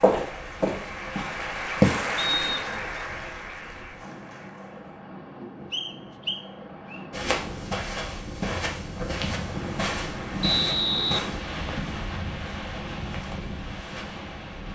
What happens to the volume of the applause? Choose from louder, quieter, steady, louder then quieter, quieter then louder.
louder then quieter.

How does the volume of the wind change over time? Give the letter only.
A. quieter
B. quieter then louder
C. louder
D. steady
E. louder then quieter
C.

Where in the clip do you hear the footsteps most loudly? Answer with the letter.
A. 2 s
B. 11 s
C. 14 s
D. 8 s
A.